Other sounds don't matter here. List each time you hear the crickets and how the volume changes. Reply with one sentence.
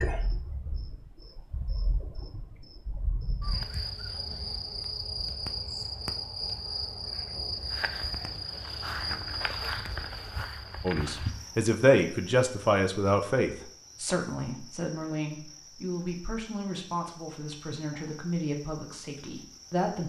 The crickets can be heard from 0.0 to 20.0 s, getting louder then quieter.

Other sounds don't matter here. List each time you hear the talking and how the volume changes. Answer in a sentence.
You can hear the talking from 10.8 to 20.0 s, getting quieter.